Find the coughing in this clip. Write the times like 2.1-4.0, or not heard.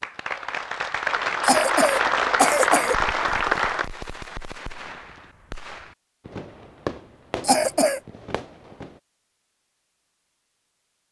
1.4-3.0, 7.4-8.0.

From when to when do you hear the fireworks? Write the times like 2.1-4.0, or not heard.
2.9-9.0.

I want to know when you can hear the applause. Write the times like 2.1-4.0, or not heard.
0.0-3.9.